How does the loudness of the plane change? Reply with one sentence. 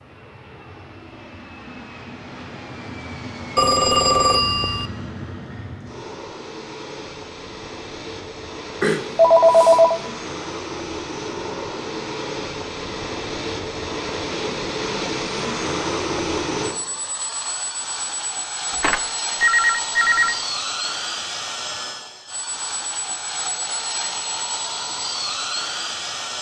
The volume of the plane goes up.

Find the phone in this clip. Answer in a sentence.
The phone can be heard from 3.5 to 4.8 s, from 8.8 to 10.0 s and from 18.8 to 20.4 s.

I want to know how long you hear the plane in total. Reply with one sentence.
The plane can be heard for 26 seconds in total.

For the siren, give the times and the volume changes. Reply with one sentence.
You can't hear the siren here.